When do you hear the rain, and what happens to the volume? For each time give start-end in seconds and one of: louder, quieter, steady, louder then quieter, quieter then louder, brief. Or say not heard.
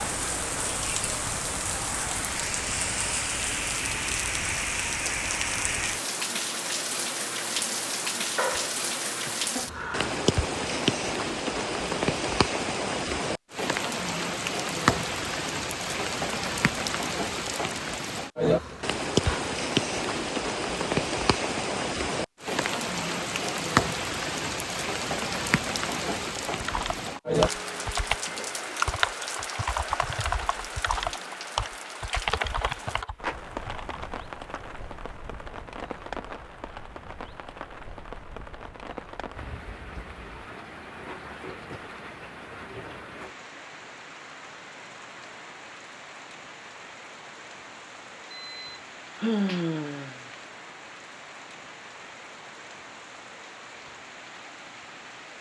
0.0-55.3 quieter.